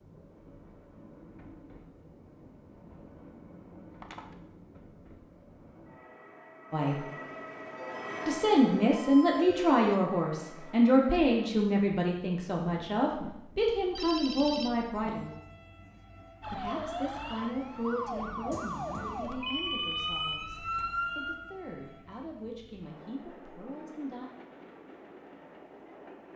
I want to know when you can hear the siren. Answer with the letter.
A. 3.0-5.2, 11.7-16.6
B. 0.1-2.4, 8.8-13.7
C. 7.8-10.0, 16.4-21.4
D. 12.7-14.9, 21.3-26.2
C.